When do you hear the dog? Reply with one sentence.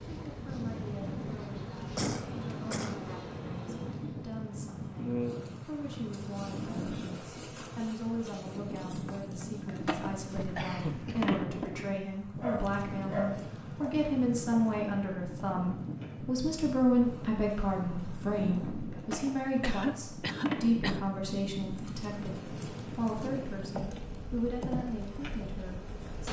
The dog can be heard from 12.3 to 13.9 s.